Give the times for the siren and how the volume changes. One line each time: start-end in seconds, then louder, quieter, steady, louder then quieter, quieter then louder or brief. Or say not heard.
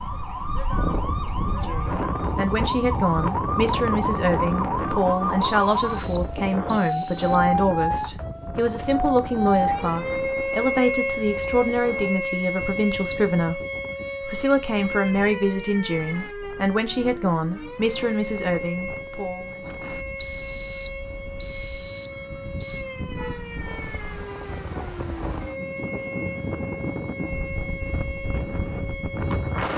0.0-29.7 quieter.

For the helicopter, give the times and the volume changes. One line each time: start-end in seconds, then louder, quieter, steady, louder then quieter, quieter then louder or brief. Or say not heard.
not heard.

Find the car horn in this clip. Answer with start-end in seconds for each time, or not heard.
23.1-24.3.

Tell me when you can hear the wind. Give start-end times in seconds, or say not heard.
0.0-29.7.